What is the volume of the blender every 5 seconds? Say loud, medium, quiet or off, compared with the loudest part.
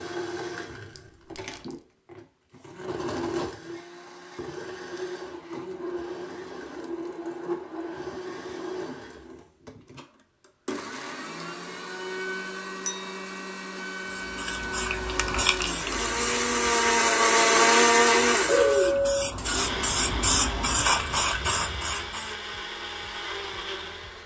quiet, quiet, quiet, loud, quiet.